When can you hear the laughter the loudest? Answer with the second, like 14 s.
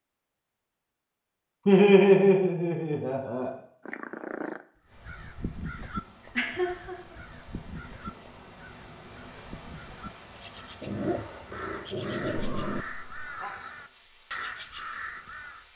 2 s.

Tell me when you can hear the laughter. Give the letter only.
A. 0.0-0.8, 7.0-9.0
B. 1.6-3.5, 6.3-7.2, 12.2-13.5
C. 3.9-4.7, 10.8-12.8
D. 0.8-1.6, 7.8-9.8
B.